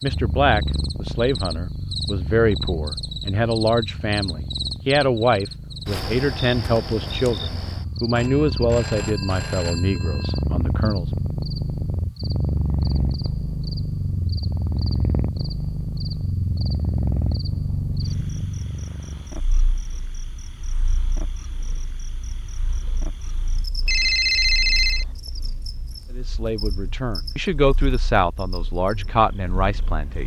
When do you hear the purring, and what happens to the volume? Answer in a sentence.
You can hear the purring from 0.0 to 30.2 s, getting louder then quieter.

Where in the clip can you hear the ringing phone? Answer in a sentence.
You can hear the ringing phone from 8.2 to 10.3 s and from 23.9 to 25.1 s.